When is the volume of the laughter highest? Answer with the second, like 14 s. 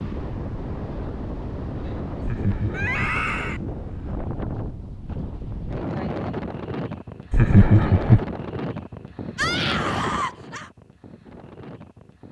8 s.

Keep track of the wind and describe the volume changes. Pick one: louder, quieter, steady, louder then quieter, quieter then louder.
steady.